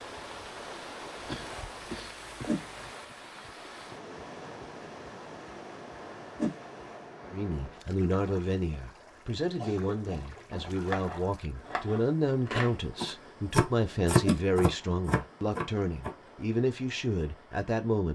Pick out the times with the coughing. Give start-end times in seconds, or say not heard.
1.2-2.9, 9.6-10.8.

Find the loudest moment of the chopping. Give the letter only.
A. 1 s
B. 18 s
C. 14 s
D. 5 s
C.